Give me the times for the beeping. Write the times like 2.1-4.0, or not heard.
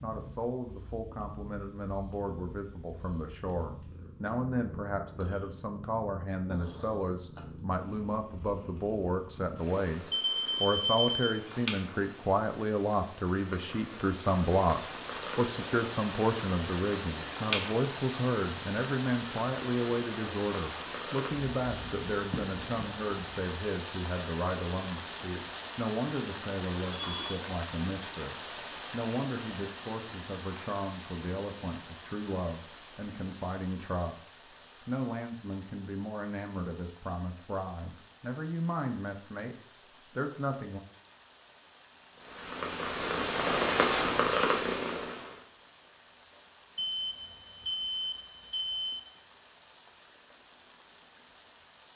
10.1-11.2, 26.8-27.4, 46.8-49.0.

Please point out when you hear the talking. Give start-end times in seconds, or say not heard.
0.0-40.8.